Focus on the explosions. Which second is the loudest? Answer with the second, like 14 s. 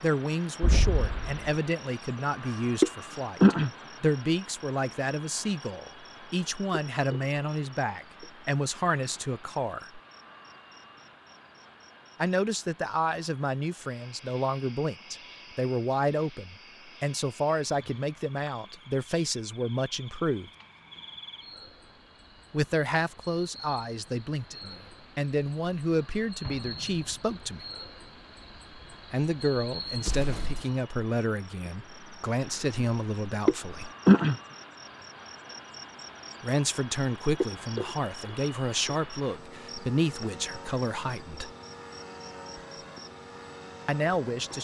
1 s.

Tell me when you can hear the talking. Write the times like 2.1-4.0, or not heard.
0.0-10.0, 12.2-20.5, 22.5-27.6, 29.1-33.9, 36.4-41.5, 43.9-44.5.